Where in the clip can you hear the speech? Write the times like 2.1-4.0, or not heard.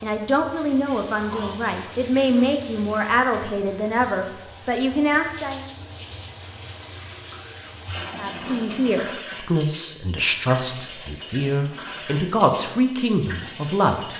0.0-5.7, 8.2-14.1.